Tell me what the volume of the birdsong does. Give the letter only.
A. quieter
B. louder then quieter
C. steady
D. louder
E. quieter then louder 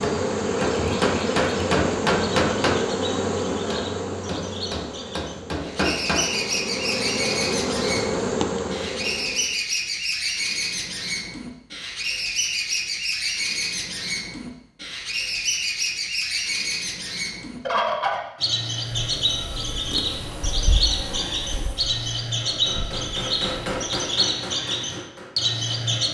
D.